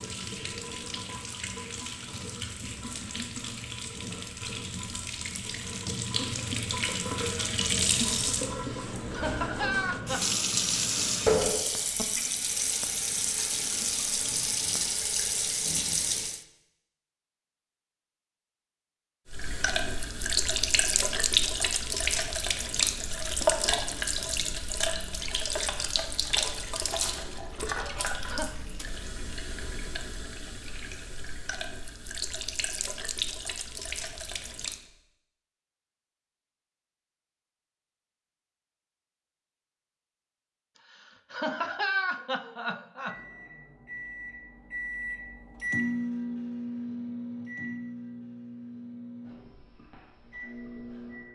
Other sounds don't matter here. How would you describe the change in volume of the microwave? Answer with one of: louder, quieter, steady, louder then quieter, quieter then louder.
louder then quieter.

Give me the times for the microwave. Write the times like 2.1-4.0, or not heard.
43.0-51.3.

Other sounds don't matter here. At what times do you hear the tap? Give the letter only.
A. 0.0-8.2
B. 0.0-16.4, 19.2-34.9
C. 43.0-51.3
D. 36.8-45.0
B.